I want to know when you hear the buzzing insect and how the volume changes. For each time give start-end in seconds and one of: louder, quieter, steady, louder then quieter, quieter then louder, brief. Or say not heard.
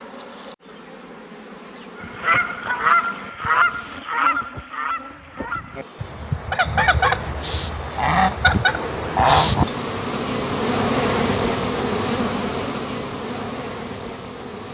0.0-14.6 louder.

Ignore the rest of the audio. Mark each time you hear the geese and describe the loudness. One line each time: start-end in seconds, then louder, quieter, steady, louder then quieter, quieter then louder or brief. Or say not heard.
2.0-9.7 quieter then louder.